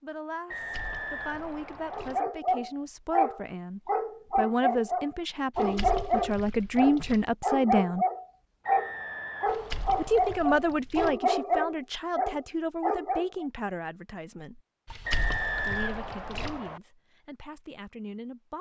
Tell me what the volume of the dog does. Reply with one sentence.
The loudness of the dog stays about the same.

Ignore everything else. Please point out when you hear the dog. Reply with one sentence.
You can hear the dog from 1.9 to 13.4 s.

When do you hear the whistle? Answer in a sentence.
You can hear the whistle from 0.5 to 2.2 s, from 8.6 to 10.3 s and from 15.1 to 16.8 s.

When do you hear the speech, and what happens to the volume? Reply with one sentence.
The speech can be heard from 0.0 to 8.1 s, getting louder; from 9.9 to 14.6 s, getting quieter; and briefly from 15.6 to 18.5 s.